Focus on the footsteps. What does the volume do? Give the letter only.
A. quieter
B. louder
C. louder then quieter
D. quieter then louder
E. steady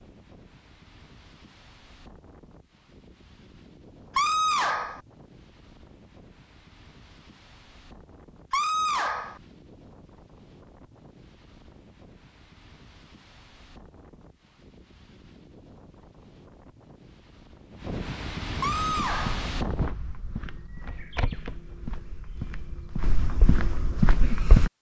D.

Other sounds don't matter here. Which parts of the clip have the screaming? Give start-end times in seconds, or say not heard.
4.2-5.0, 8.5-9.4, 18.6-19.4.